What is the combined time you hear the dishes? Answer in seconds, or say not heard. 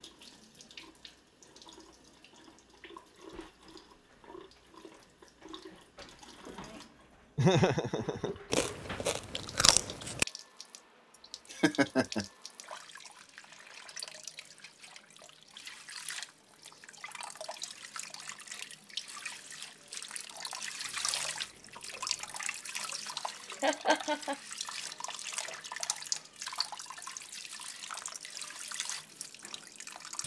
not heard.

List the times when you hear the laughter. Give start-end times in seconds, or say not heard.
7.3-8.4, 11.5-12.2, 23.6-24.4.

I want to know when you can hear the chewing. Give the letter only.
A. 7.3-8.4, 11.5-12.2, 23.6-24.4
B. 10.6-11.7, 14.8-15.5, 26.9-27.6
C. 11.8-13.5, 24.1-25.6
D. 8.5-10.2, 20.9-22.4
D.